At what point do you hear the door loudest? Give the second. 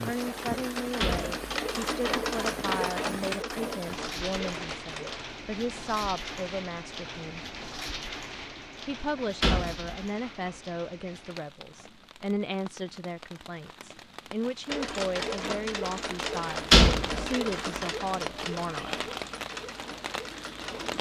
17 s.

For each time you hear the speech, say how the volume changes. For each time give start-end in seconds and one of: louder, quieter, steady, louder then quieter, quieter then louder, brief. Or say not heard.
0.0-7.4 steady
8.8-19.1 steady.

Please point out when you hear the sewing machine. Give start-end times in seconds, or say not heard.
0.0-5.2, 14.7-20.9.